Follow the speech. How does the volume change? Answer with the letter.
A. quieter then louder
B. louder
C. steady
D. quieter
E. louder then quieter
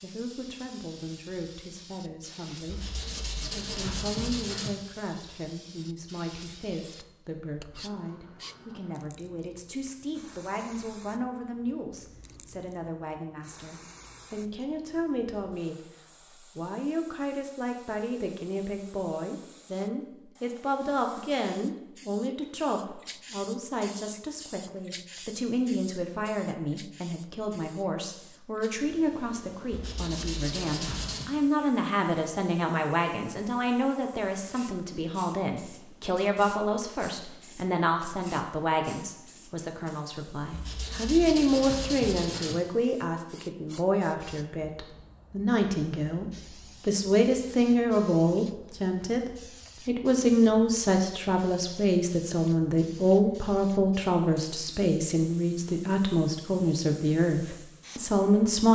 B.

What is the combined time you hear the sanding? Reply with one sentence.
You can hear the sanding for 6 seconds altogether.